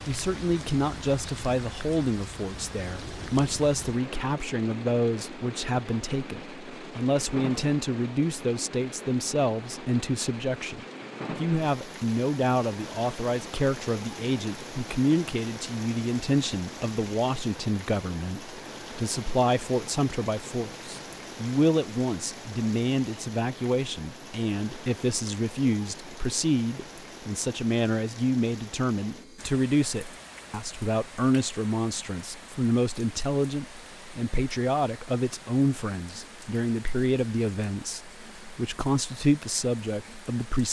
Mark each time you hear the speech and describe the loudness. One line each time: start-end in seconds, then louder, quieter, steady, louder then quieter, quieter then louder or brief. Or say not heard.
0.1-40.6 steady.